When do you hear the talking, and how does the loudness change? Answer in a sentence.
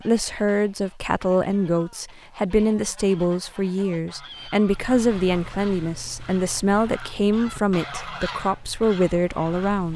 You can hear the talking from 0.0 to 9.9 s, at a steady volume.